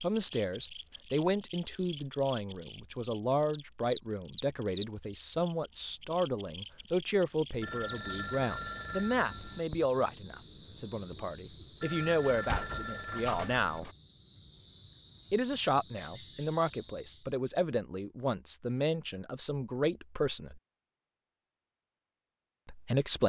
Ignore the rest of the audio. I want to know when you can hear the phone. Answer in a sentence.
The phone can be heard from 7.6 to 9.7 s and from 11.8 to 13.8 s.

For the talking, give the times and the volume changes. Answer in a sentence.
The talking can be heard from 0.0 to 13.9 s, at a steady volume; from 15.3 to 20.6 s, at a steady volume; and briefly from 22.6 to 23.2 s.